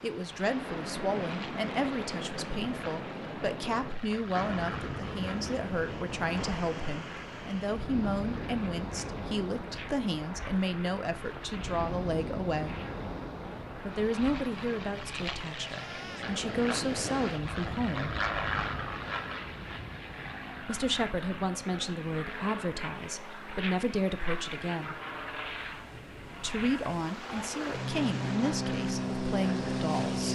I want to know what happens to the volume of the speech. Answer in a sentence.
The loudness of the speech stays about the same.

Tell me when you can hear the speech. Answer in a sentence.
You can hear the speech from 0.0 to 12.8 s, from 13.8 to 18.1 s, from 20.6 to 25.0 s and from 26.4 to 30.3 s.